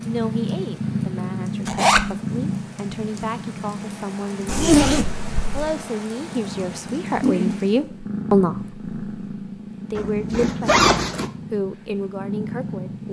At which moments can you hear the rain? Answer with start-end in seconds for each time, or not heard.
0.0-7.8.